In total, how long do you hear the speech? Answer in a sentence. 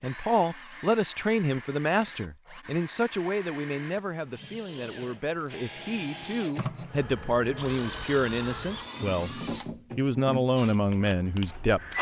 You can hear the speech for 12 seconds altogether.